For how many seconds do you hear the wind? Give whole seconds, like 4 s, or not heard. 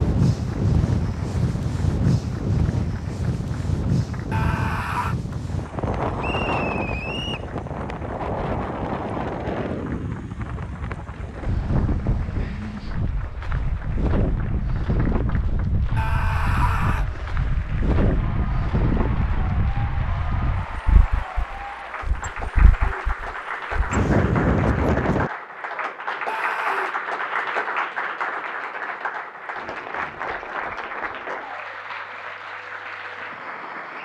25 s.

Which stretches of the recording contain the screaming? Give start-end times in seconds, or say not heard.
4.3-5.2, 15.9-17.1, 26.2-26.9.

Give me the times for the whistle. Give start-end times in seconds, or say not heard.
6.2-7.5.